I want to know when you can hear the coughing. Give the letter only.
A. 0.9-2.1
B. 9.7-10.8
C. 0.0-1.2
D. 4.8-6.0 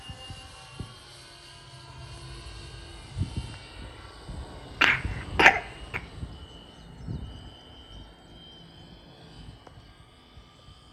D.